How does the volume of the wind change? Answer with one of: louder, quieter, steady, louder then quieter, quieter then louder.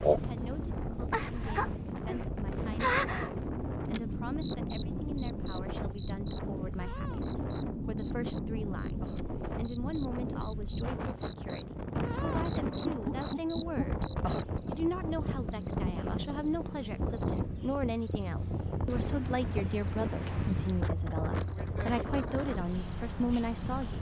steady.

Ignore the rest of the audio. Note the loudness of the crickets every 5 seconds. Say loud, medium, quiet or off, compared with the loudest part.
loud, quiet, medium, medium, medium.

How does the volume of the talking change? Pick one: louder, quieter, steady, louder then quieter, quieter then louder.
louder.